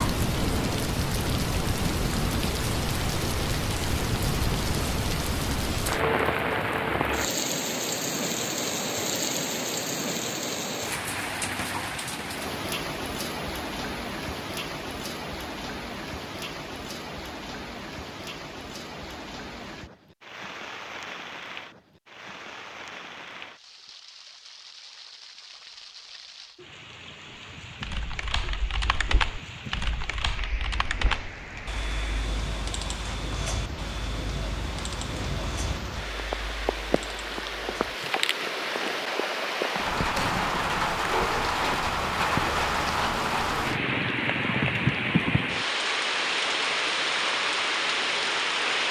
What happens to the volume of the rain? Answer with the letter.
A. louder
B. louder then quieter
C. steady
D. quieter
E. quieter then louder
E.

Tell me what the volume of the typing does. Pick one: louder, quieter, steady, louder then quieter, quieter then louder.
quieter.